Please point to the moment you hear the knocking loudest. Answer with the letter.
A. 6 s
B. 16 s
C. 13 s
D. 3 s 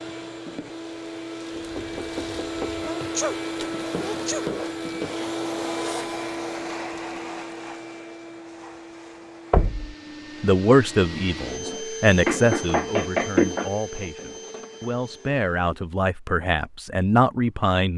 C.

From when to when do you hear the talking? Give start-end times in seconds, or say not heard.
10.4-17.9.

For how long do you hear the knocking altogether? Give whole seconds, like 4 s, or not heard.
3 s.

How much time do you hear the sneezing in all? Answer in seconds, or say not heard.
2 s.